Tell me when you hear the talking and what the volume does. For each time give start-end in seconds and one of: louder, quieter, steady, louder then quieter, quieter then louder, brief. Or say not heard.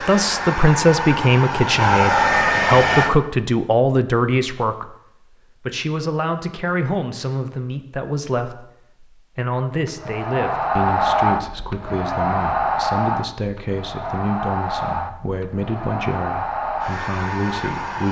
0.0-18.0 quieter.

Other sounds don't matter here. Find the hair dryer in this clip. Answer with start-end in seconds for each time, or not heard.
0.0-3.1, 9.8-18.0.